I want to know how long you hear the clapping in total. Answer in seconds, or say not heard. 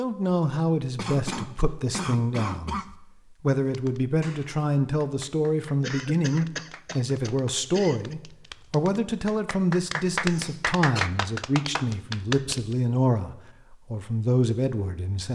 9 s.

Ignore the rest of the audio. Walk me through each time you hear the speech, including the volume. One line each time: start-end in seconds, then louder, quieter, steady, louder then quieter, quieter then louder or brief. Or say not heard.
0.0-15.2 steady.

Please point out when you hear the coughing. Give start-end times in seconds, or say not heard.
0.9-2.9, 5.8-8.2, 10.3-11.1.